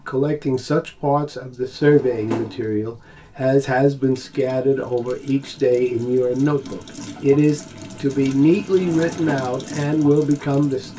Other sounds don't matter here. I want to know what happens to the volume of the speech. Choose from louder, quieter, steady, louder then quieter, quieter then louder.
steady.